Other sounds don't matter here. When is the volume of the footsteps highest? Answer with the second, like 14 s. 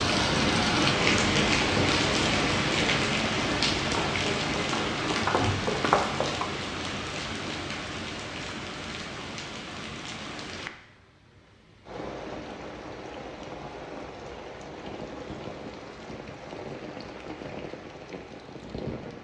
6 s.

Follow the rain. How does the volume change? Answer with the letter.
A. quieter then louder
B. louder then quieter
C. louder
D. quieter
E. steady
D.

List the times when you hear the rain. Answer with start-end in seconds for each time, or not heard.
0.0-19.1.